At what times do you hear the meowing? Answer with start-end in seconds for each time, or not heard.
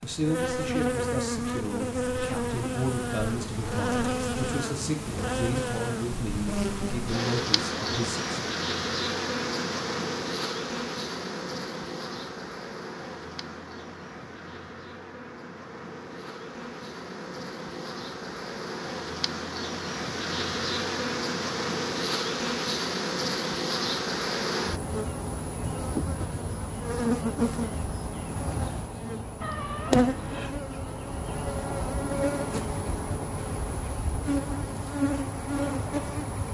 29.4-30.5.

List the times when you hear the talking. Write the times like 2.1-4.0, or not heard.
0.0-8.3.